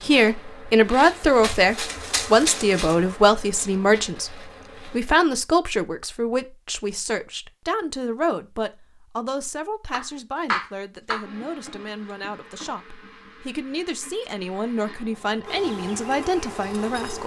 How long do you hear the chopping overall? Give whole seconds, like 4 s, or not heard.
2 s.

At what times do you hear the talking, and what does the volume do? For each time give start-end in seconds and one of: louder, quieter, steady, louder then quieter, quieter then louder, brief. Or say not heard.
0.0-17.2 quieter then louder.